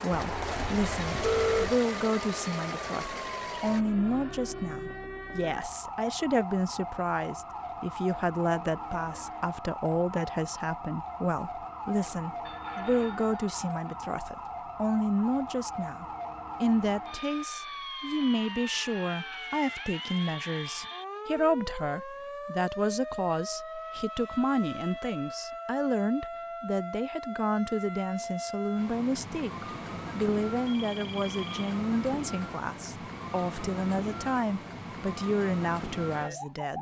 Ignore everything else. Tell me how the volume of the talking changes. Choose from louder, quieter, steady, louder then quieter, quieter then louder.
steady.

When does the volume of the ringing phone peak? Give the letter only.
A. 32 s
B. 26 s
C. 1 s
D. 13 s
C.